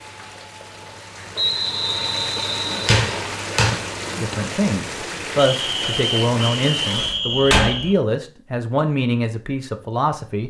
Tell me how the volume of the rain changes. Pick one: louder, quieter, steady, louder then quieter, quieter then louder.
louder.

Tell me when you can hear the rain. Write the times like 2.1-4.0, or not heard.
0.0-7.2.